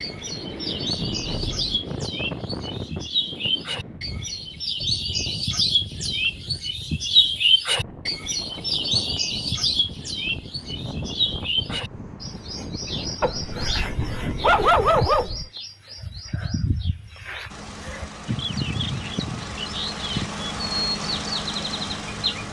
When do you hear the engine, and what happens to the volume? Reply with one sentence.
The engine can be heard briefly from 0.2 to 1.8 s; and from 17.4 to 22.4 s, getting louder.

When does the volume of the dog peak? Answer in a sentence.
The loudest moment of the dog is at 15 seconds.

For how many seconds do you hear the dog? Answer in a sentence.
You can hear the dog for 2 seconds altogether.